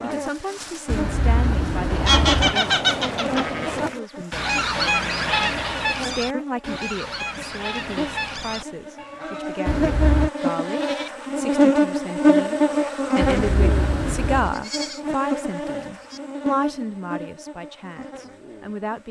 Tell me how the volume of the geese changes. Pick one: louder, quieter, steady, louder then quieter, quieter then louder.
quieter.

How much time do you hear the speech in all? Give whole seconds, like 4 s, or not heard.
19 s.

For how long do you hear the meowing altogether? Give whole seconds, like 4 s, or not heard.
4 s.